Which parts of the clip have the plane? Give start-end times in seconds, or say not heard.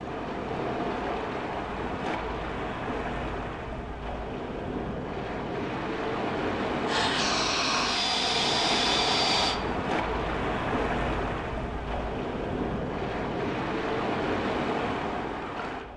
6.8-9.6.